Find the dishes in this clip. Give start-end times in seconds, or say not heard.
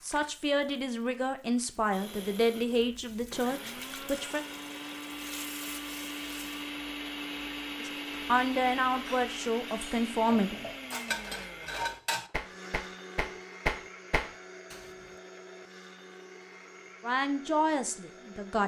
9.1-14.8.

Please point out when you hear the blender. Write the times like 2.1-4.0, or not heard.
1.9-18.6.